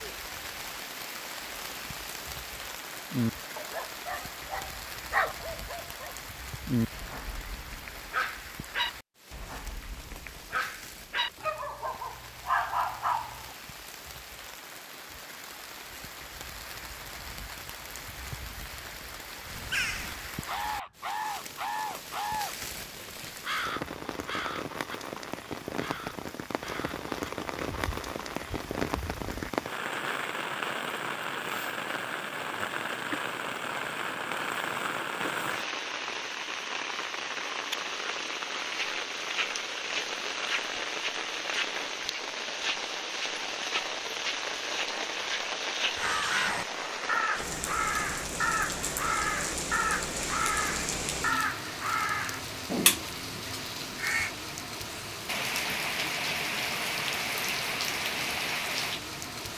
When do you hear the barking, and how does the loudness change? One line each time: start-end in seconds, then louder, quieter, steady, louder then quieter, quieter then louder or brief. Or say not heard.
3.1-13.4 quieter then louder.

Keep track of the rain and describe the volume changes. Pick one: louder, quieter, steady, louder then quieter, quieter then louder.
louder.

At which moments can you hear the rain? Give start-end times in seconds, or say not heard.
0.0-59.5.